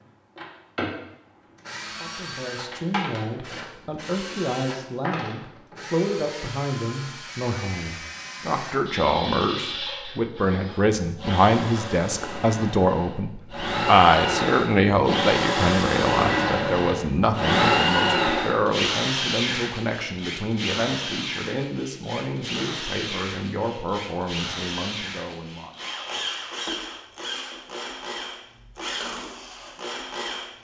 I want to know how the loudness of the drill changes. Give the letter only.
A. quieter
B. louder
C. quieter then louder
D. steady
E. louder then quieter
E.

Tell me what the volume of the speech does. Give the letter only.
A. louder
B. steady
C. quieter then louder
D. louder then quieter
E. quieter
D.